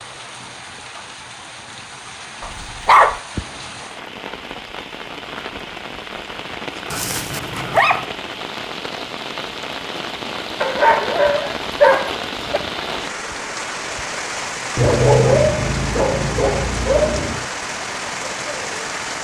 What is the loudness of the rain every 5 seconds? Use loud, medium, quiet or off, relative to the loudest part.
medium, loud, loud, loud.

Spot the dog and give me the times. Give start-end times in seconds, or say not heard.
2.4-3.2, 6.9-8.1, 10.6-12.6, 14.8-17.4.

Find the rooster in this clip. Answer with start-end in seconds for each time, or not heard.
not heard.